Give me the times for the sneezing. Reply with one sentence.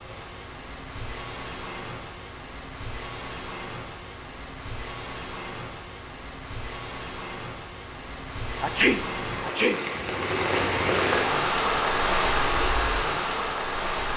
You can hear the sneezing from 8.6 to 9.8 s.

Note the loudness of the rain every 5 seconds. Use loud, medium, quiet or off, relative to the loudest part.
quiet, medium, loud.